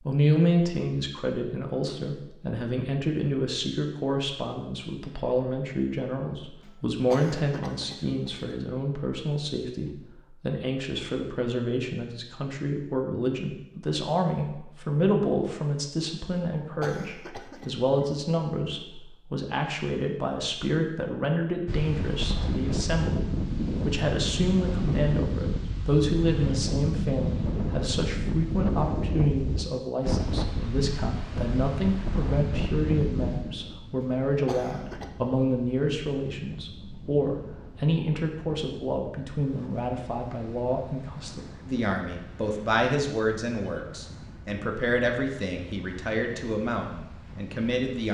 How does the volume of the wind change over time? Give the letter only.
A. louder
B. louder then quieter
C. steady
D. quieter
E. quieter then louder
D.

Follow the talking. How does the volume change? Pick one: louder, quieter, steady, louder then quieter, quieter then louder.
steady.